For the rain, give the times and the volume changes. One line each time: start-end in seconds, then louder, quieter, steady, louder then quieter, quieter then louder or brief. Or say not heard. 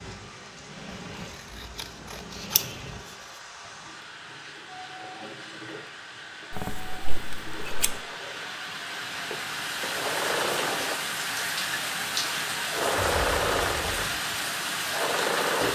0.0-15.6 louder.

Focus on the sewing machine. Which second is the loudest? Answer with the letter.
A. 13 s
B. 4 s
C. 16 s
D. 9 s
A.